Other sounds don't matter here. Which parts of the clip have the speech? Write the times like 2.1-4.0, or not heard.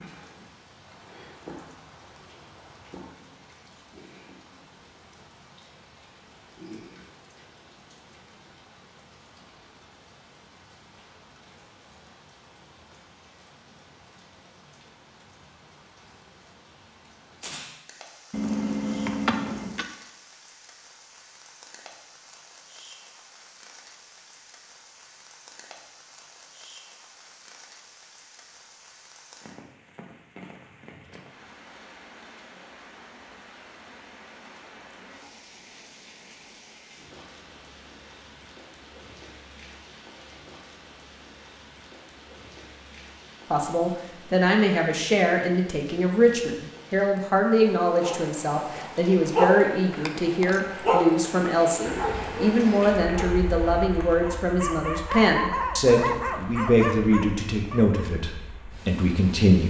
43.5-59.6.